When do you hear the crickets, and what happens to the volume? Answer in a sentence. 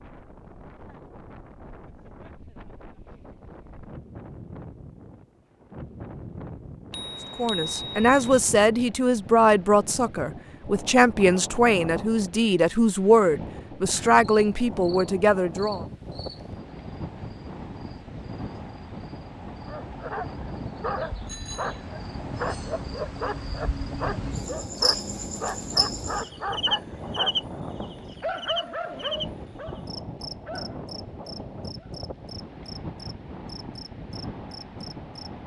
The crickets can be heard from 14.2 to 35.3 s, getting louder then quieter.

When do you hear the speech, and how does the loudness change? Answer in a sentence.
The speech can be heard from 7.3 to 15.8 s, at a steady volume.